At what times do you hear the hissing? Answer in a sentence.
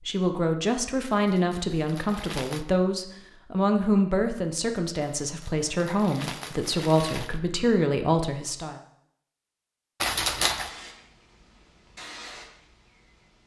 The hissing can be heard from 10.7 to 13.4 s.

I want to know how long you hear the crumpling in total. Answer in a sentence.
You can hear the crumpling for 4 seconds altogether.